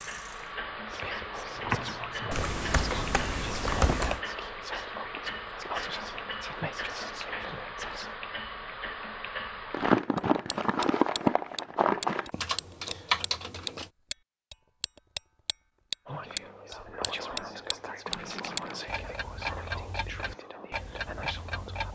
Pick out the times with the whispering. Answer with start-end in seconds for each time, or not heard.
0.8-8.2, 16.1-21.9.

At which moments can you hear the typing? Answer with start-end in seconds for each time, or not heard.
2.3-4.2, 12.3-13.9.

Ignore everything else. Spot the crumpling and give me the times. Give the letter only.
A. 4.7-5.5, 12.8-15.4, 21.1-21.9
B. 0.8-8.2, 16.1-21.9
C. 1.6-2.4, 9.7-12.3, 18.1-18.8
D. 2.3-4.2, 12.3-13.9
C.